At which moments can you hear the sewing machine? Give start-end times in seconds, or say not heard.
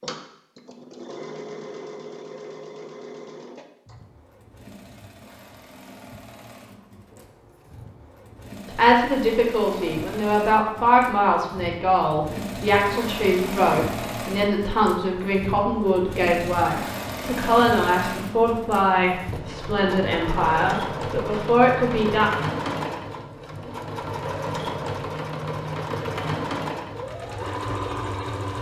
0.0-28.5.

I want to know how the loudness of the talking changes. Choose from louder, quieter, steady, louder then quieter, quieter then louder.
steady.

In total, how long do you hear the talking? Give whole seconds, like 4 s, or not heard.
14 s.